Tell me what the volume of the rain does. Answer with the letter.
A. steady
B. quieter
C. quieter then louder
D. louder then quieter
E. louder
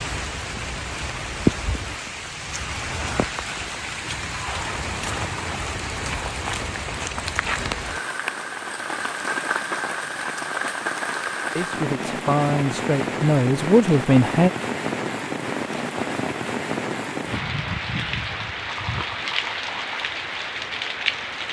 A.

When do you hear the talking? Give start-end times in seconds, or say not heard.
11.6-14.5.